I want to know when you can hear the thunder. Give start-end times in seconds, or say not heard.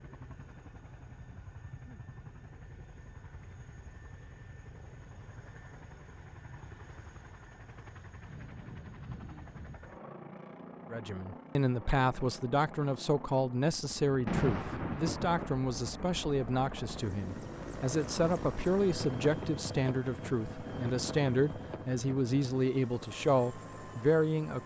8.2-9.8, 14.2-16.2.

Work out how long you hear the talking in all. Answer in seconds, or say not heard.
14 s.